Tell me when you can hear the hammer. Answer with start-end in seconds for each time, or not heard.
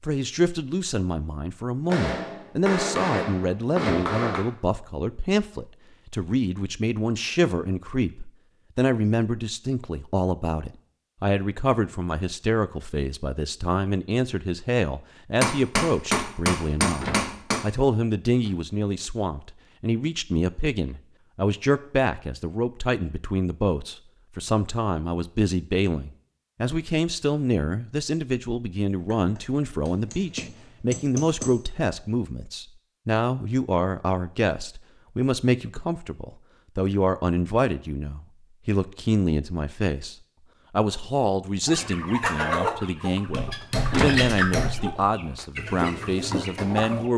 1.9-4.5, 15.4-17.6, 29.1-31.6, 43.2-45.0.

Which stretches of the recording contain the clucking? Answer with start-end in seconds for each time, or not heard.
41.6-47.1.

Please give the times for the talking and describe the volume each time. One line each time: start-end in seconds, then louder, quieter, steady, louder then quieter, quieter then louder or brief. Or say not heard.
0.0-47.1 steady.